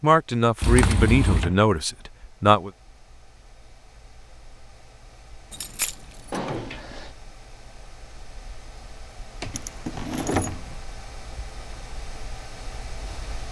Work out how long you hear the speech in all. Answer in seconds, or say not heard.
3 s.